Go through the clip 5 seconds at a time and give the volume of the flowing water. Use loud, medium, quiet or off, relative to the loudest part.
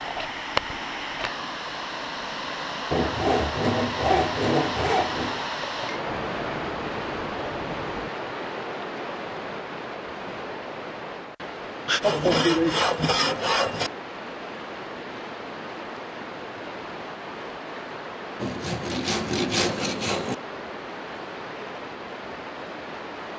loud, loud, medium, medium, medium.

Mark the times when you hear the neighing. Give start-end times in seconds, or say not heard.
not heard.